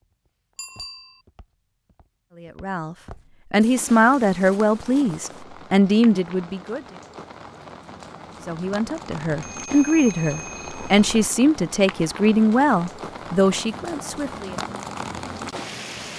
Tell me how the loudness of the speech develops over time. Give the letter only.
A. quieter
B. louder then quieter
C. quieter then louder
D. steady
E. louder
D.